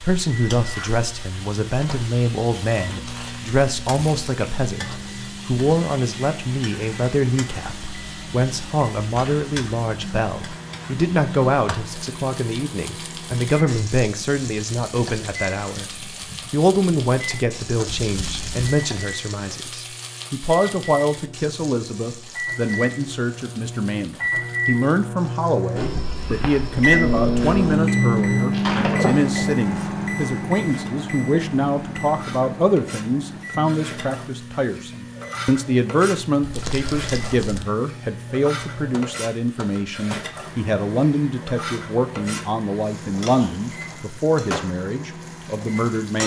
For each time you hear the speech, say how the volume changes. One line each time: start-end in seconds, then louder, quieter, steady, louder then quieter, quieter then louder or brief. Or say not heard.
0.0-46.2 steady.